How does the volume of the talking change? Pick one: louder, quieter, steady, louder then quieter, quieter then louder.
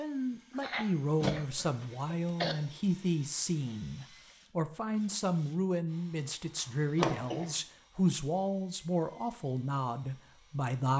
steady.